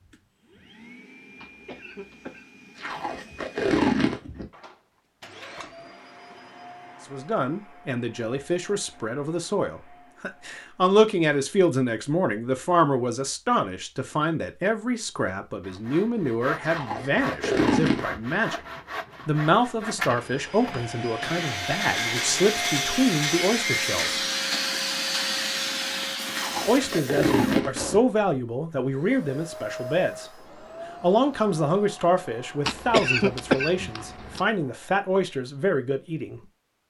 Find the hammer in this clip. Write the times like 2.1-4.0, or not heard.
not heard.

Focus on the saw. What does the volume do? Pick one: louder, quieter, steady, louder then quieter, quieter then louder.
louder.